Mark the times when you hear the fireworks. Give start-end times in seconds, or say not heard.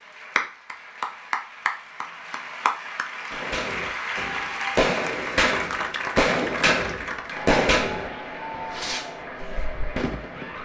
3.3-10.6.